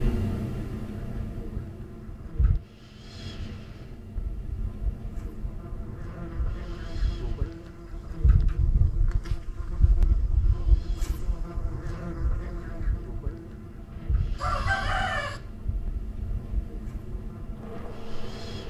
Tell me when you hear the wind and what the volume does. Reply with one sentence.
You can hear the wind from 0.0 to 18.6 s, getting quieter then louder.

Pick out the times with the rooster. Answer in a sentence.
The rooster can be heard from 14.3 to 15.4 s.